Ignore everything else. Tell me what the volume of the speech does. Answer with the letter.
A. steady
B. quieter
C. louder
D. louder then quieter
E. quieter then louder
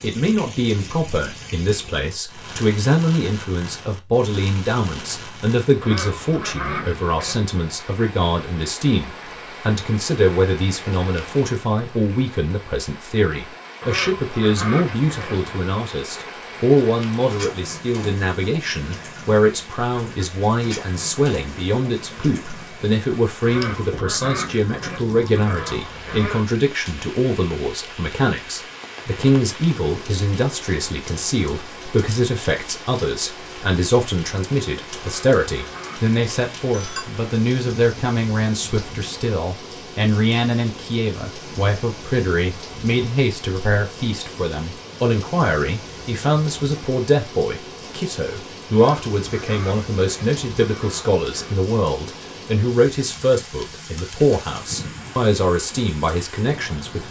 A.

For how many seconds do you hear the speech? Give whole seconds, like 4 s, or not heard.
57 s.